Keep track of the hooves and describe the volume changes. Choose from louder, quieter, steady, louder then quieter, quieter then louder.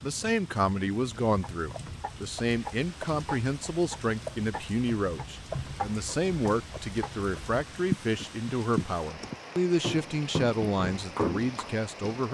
louder.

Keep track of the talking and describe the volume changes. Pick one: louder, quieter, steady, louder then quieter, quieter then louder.
steady.